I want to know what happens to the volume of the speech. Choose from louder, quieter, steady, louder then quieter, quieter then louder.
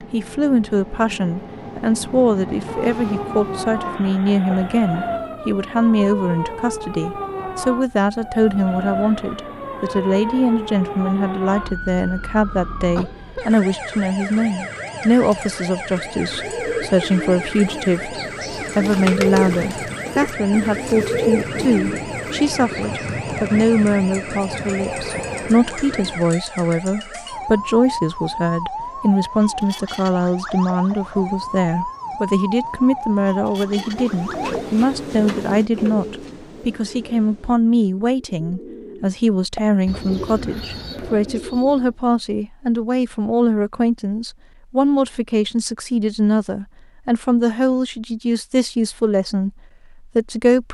steady.